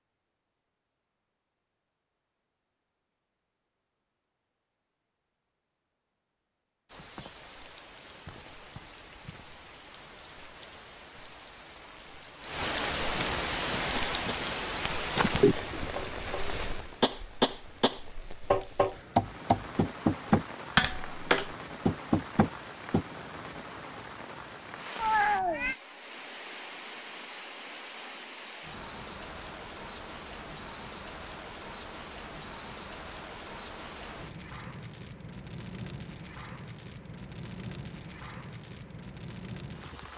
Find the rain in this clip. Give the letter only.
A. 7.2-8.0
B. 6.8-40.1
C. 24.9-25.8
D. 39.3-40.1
B.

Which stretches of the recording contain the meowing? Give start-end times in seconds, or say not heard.
24.9-25.8.